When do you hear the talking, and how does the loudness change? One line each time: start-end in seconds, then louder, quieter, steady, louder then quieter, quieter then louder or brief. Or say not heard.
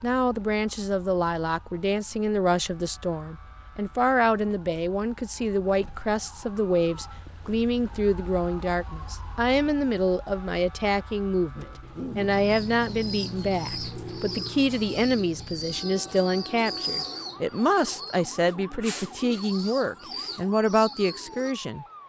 0.0-22.0 steady.